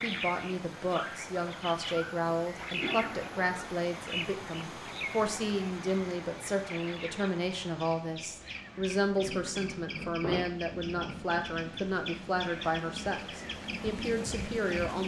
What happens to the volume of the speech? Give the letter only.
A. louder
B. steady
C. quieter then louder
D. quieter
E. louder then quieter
B.